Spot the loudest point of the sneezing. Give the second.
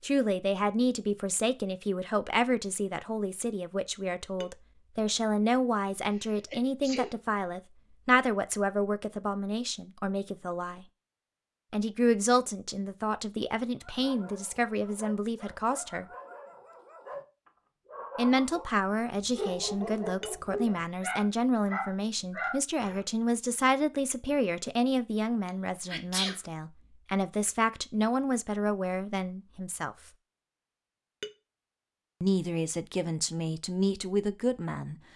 26 s.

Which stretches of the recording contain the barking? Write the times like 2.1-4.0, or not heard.
13.8-23.1.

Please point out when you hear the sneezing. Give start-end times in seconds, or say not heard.
6.1-7.2, 25.4-26.4.